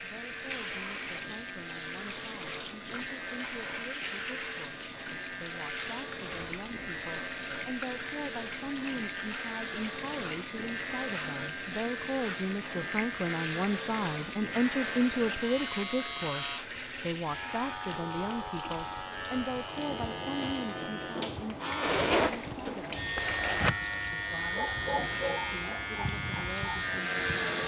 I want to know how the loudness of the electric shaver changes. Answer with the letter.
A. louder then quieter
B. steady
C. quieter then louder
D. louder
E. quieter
D.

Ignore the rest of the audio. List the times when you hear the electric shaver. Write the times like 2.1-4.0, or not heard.
0.0-27.6.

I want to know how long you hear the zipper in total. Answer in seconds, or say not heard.
2 s.